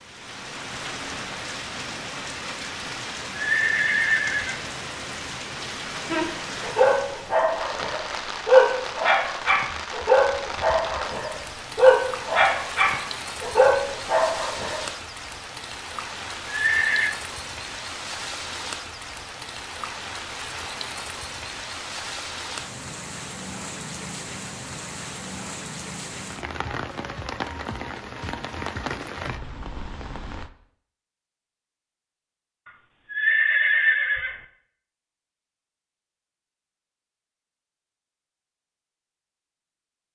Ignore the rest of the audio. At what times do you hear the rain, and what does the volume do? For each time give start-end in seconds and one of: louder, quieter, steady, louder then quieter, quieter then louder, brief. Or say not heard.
0.0-30.5 steady.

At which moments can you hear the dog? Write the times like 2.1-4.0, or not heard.
6.1-14.8.